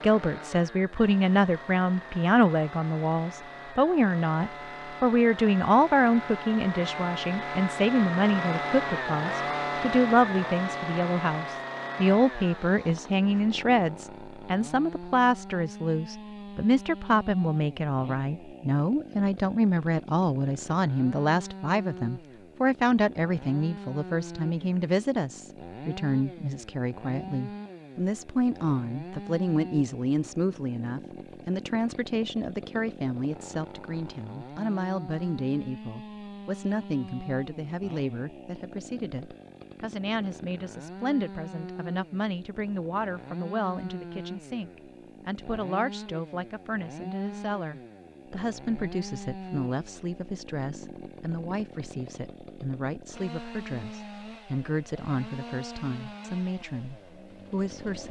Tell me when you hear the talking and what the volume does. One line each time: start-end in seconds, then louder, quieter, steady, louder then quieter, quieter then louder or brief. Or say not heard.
0.0-58.0 quieter.